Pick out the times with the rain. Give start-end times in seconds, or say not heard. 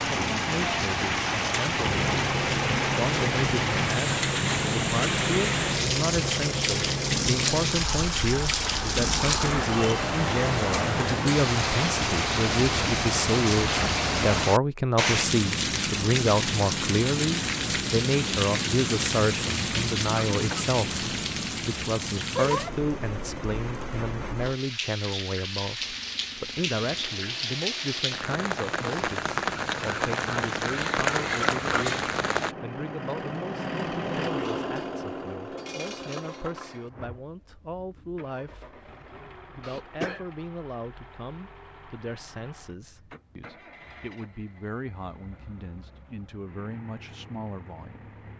0.0-32.5.